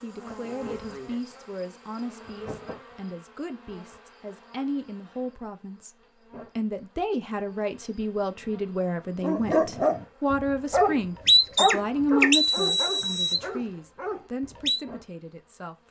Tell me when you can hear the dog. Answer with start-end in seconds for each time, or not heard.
9.2-14.8.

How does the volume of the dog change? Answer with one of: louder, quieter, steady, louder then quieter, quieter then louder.
louder then quieter.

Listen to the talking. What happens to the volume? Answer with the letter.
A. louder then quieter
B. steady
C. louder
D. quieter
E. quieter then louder
A.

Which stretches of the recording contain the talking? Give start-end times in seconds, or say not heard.
0.0-5.9, 6.5-15.8.